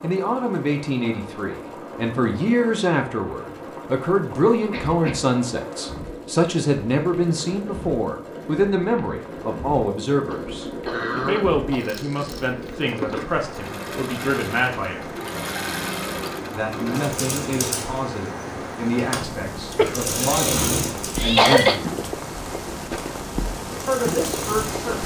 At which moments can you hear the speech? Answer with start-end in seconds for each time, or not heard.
0.0-15.2, 16.5-22.1, 23.9-25.0.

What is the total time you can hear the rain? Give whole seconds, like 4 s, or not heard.
25 s.